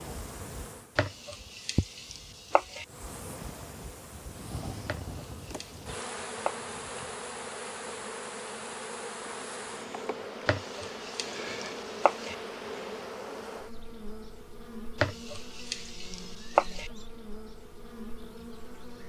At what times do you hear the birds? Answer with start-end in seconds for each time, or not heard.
not heard.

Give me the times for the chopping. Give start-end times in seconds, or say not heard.
0.9-2.9, 4.8-6.5, 10.4-12.3, 15.0-16.9.